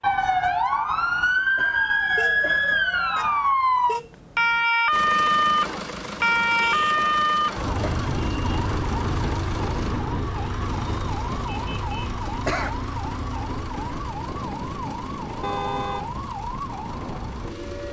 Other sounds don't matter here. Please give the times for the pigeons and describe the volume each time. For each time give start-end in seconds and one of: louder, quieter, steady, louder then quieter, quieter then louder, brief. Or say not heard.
not heard.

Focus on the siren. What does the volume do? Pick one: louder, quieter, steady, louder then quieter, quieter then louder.
quieter.